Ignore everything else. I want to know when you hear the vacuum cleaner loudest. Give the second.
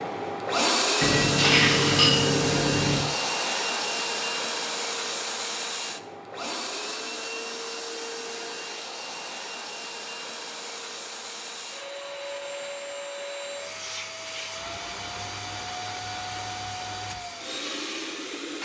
1 s.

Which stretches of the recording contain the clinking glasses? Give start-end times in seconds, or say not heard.
1.0-3.0.